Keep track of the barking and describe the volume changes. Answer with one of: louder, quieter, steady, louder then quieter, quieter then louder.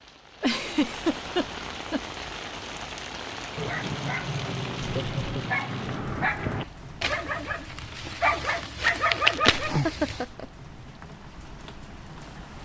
louder.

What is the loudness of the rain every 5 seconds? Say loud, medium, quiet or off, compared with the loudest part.
loud, medium, medium.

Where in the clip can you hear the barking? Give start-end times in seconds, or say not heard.
3.5-10.3.